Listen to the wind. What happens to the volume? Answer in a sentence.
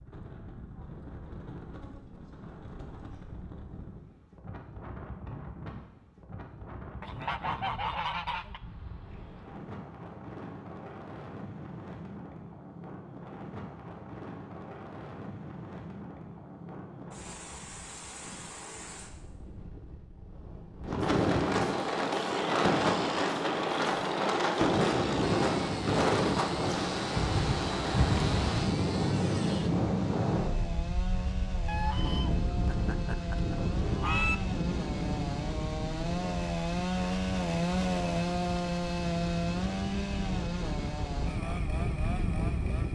The loudness of the wind goes up, then down.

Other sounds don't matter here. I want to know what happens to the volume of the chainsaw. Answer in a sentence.
The loudness of the chainsaw goes up.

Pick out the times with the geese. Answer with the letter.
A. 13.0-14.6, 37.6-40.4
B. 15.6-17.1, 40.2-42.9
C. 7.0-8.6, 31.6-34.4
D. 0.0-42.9
C.